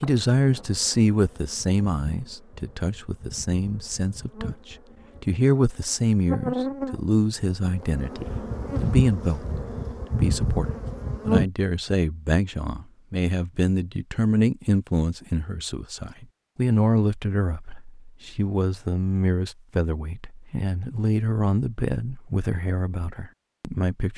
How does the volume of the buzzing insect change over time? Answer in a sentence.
The volume of the buzzing insect goes up.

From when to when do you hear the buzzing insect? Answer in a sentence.
You can hear the buzzing insect from 0.0 to 11.4 s.